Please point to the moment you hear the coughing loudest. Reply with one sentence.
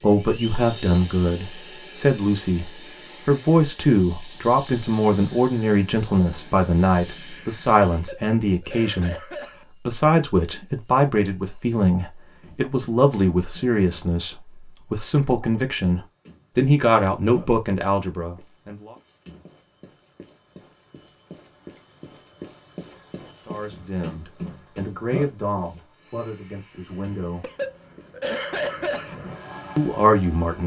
The loudest moment of the coughing is at 29 seconds.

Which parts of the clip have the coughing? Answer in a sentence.
You can hear the coughing from 7.9 to 9.7 s and from 27.4 to 29.1 s.